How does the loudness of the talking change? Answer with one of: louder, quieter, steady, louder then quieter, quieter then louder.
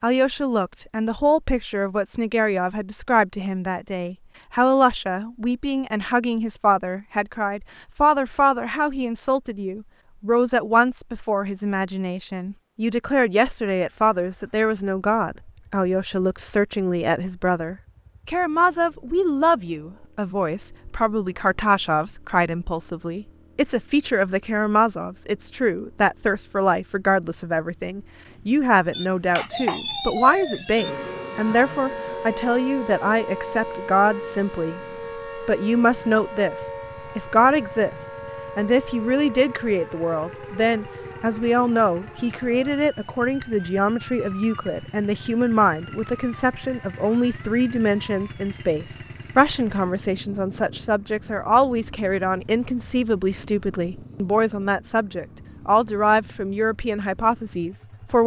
steady.